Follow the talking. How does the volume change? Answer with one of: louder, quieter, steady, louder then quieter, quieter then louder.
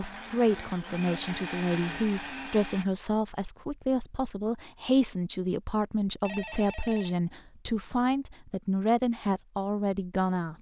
steady.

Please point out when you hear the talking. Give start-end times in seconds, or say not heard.
0.0-10.5.